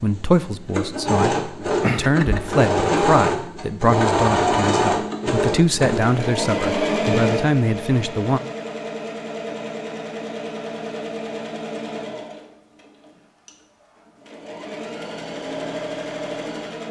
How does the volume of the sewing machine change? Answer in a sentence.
The volume of the sewing machine goes down.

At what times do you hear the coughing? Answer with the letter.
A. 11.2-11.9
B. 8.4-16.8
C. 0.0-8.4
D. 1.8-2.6
D.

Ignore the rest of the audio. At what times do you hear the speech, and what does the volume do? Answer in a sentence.
The speech can be heard from 0.0 to 8.4 s, getting louder.